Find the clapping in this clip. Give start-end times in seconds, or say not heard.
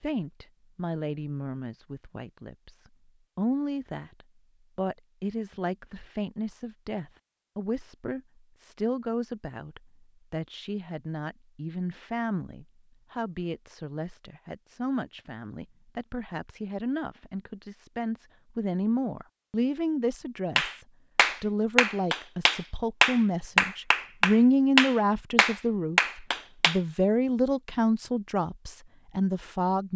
20.6-26.8.